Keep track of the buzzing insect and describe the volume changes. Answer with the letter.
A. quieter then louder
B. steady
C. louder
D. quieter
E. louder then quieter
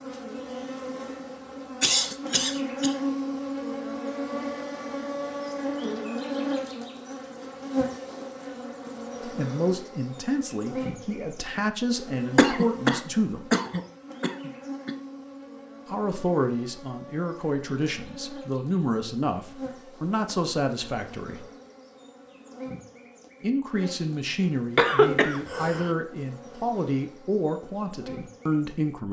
D.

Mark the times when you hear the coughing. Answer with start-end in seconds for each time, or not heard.
1.8-3.0, 12.3-14.9, 24.8-25.9.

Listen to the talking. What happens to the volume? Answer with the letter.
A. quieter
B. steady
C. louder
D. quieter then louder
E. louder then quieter
B.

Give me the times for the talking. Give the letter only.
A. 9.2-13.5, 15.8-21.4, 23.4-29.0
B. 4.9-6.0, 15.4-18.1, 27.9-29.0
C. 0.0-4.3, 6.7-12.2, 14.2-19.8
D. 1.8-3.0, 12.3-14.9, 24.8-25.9
A.